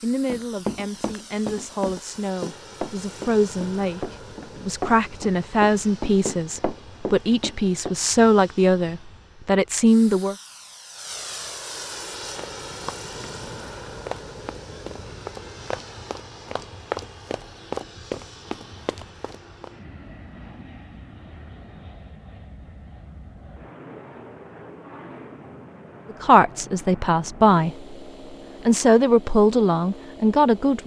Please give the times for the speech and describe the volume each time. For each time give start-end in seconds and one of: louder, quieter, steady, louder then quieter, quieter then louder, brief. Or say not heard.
0.0-10.3 louder
26.1-27.9 brief
28.6-30.8 brief.